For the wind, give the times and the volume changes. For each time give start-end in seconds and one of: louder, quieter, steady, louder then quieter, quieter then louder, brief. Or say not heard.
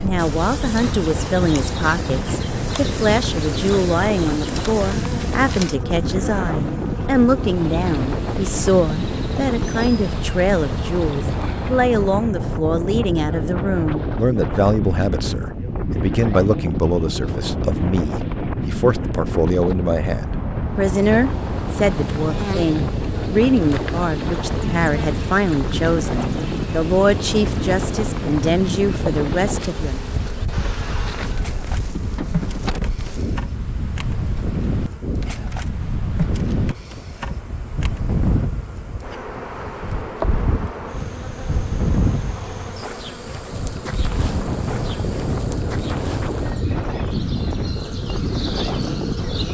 0.0-49.4 steady.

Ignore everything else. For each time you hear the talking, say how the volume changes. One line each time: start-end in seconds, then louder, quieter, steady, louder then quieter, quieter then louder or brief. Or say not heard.
0.0-30.0 steady.